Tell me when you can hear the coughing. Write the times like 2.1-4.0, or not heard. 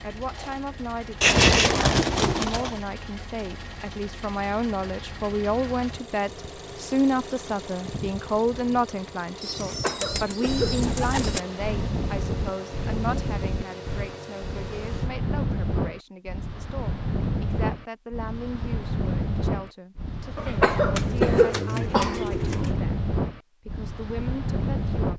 9.6-10.8, 20.4-22.2.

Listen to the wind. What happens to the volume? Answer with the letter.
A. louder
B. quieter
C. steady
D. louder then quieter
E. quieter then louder
C.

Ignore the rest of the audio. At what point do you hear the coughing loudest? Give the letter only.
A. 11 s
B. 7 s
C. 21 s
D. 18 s
C.